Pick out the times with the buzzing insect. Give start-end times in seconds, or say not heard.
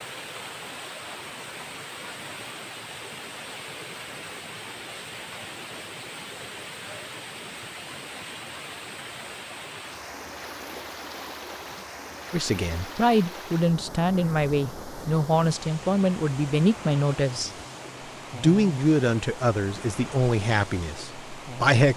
not heard.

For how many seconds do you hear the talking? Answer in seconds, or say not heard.
9 s.